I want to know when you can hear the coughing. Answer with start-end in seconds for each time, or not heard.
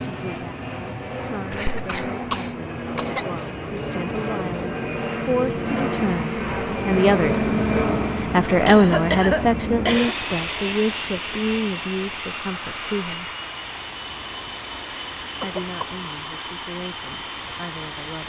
1.5-3.2, 8.7-10.2, 15.4-15.9.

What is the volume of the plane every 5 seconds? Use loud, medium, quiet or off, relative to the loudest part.
medium, loud, medium, medium.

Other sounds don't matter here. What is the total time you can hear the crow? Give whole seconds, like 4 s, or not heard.
not heard.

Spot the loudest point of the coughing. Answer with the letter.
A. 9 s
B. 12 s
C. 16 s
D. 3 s
A.